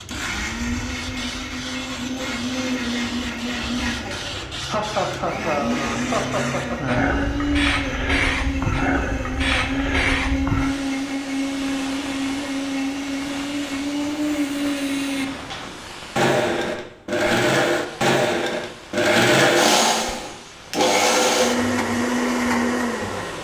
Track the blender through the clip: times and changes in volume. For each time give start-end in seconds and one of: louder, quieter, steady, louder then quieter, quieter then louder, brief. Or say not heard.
0.0-23.3 louder.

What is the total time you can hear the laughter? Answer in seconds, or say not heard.
2 s.